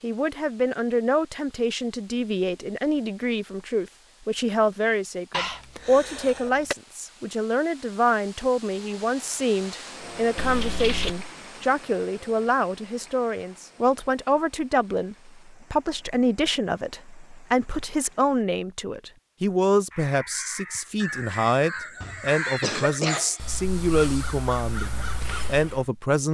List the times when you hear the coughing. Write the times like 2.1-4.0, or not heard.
5.3-6.8, 10.3-11.3, 22.0-23.6.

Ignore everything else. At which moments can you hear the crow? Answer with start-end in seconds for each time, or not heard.
19.9-25.9.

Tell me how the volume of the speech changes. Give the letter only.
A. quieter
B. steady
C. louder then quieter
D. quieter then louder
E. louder
B.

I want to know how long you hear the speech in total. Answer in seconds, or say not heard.
26 s.